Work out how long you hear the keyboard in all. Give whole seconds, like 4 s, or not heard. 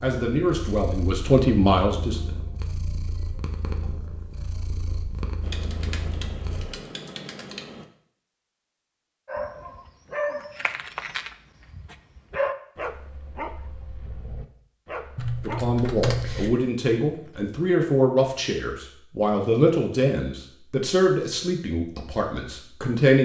4 s.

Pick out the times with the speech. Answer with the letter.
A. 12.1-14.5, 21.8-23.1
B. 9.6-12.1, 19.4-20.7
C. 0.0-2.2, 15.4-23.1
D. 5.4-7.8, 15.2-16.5
C.